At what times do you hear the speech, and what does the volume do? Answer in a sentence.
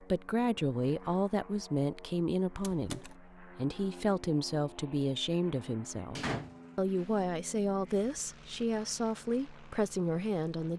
The speech can be heard from 0.0 to 10.7 s, at a steady volume.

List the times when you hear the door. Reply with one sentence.
You can hear the door from 2.5 to 3.1 s and from 6.2 to 7.0 s.